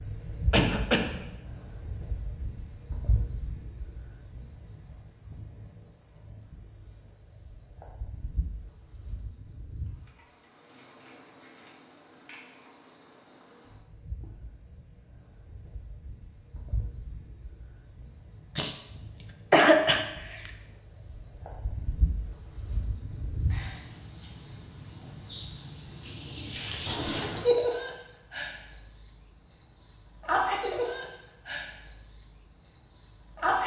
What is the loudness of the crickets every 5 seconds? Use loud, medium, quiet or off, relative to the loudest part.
medium, quiet, quiet, quiet, medium, loud, loud.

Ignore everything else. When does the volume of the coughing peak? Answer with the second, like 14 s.
20 s.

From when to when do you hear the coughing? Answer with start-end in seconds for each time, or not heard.
0.5-1.2, 18.6-20.5, 26.9-27.4.